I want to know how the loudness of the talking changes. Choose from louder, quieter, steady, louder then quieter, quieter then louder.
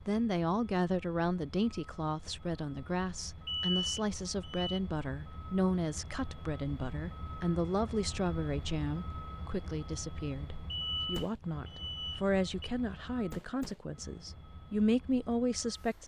steady.